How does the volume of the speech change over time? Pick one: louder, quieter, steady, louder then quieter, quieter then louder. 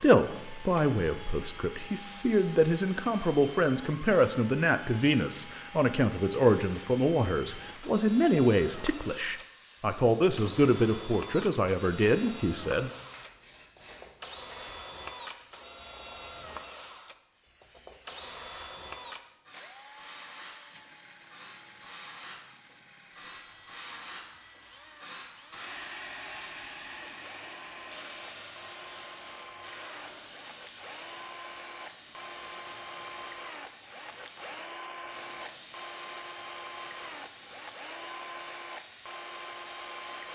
steady.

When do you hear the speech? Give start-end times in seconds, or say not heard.
0.0-12.9.